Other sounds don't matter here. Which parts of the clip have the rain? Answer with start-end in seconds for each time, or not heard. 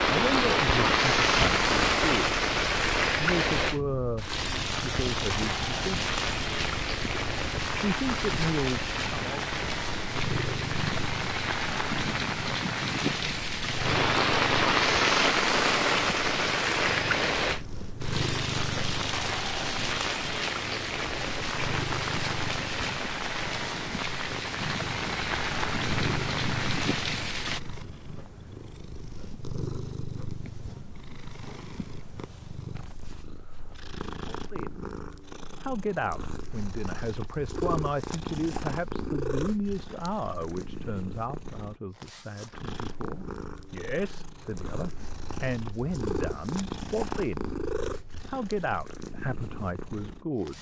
0.0-27.6.